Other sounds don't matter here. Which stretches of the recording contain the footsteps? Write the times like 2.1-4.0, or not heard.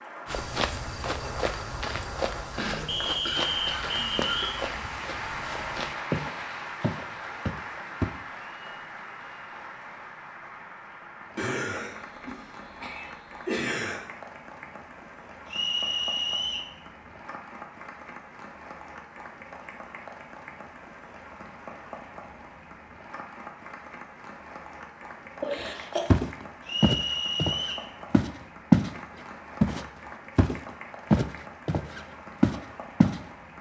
0.2-8.1, 25.6-28.9, 29.6-33.2.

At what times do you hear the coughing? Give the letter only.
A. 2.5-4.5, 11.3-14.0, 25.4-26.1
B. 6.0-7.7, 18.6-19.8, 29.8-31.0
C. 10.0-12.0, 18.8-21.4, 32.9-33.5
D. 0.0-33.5
A.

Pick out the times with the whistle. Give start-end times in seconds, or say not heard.
2.9-4.6, 15.4-16.7, 26.6-27.9.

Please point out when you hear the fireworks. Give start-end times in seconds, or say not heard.
not heard.